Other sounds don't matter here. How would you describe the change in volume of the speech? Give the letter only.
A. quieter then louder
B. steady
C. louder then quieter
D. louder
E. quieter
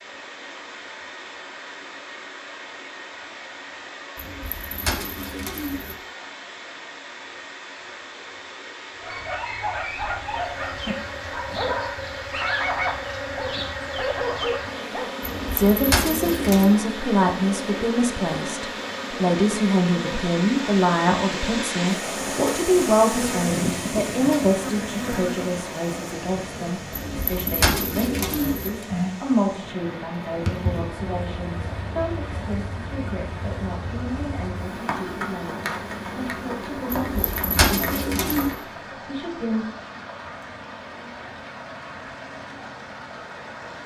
E.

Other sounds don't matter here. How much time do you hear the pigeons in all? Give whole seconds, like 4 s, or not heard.
7 s.